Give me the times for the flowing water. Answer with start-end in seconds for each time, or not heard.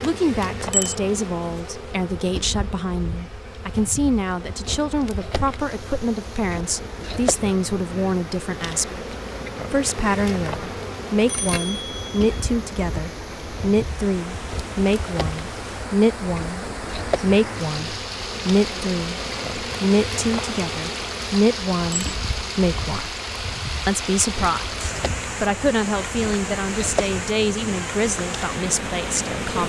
5.5-29.6.